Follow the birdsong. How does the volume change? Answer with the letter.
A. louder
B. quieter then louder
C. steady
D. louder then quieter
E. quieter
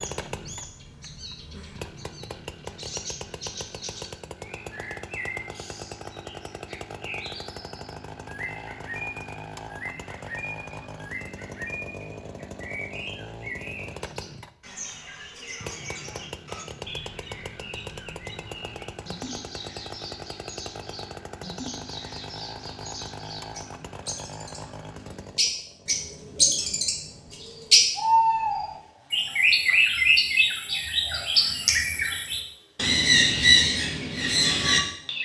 A.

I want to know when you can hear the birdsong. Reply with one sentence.
You can hear the birdsong from 0.0 to 35.2 s.